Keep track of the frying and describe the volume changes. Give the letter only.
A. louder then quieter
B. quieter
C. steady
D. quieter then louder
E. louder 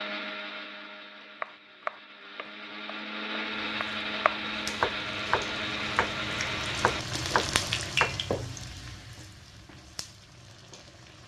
A.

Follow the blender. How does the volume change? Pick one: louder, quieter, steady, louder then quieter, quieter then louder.
louder.